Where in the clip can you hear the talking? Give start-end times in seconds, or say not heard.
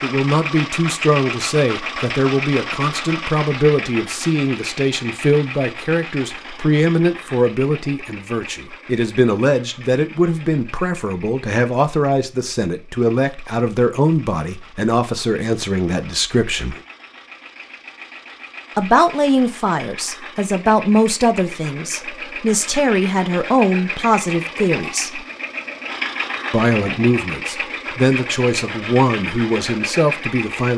0.0-16.8, 18.8-25.2, 26.5-30.7.